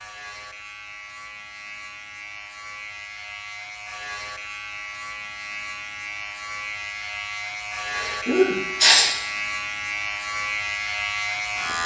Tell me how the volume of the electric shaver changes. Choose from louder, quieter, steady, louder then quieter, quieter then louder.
louder.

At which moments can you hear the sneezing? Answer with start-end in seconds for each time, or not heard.
8.0-9.2.